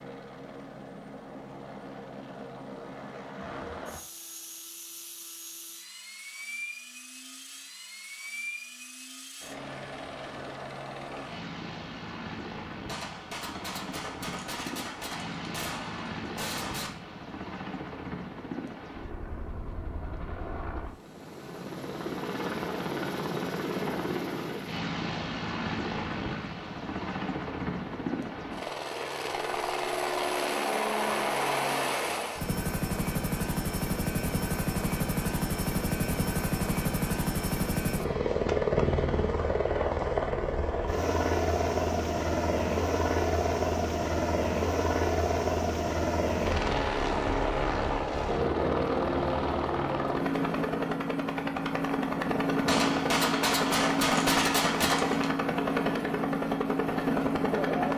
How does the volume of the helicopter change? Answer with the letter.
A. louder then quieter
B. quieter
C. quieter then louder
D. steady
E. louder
E.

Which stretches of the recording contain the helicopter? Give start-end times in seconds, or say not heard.
0.0-57.9.